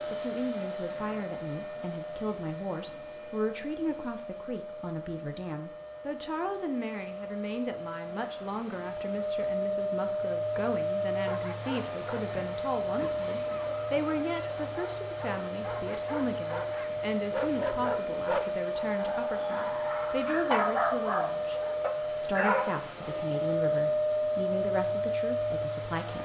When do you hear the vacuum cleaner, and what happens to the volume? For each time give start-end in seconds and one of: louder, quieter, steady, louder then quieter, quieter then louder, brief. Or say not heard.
0.0-26.2 louder.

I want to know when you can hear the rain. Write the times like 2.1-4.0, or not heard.
not heard.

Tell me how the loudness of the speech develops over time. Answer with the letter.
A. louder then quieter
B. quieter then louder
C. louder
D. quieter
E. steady
E.